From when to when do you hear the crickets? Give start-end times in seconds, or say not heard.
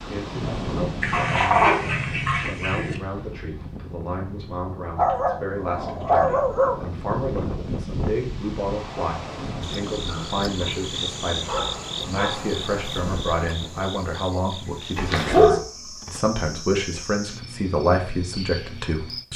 9.6-19.3.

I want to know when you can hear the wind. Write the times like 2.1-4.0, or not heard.
0.0-13.9.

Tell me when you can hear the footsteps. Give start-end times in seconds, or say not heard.
not heard.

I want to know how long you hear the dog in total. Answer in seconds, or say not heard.
7 s.